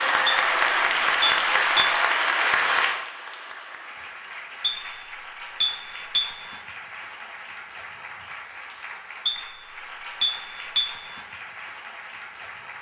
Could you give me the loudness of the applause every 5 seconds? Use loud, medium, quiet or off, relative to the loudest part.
loud, quiet, quiet.